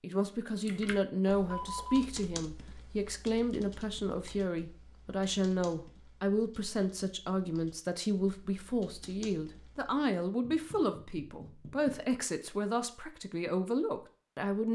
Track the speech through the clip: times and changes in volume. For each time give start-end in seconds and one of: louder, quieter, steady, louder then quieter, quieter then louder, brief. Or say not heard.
0.0-14.6 steady.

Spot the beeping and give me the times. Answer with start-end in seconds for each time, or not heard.
1.5-2.0.